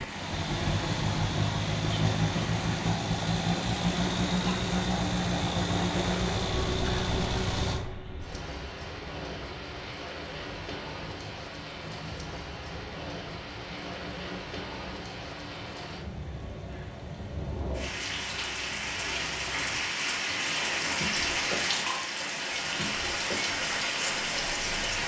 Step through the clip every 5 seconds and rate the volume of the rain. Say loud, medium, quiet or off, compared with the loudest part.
medium, medium, medium, medium, loud.